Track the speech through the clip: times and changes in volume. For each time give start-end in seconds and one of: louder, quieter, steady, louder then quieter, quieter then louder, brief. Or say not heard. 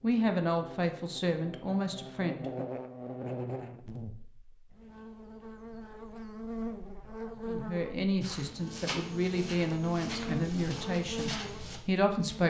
0.0-2.6 brief
7.5-12.4 steady.